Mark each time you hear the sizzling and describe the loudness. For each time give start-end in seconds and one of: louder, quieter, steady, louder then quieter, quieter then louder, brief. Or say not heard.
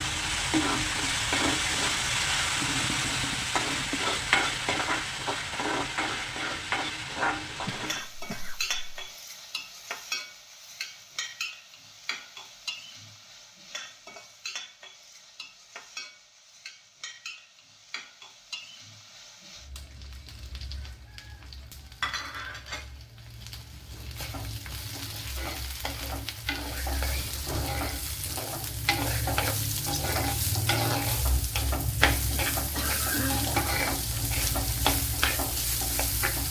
0.0-36.4 quieter then louder.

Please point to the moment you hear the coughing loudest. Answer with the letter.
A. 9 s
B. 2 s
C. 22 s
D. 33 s
D.